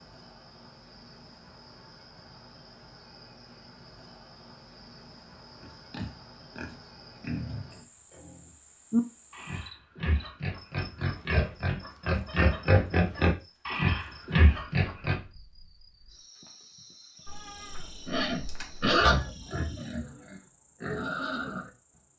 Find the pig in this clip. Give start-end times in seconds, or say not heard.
5.6-15.2, 18.1-21.7.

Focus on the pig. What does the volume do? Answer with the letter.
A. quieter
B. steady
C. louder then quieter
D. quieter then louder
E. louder
C.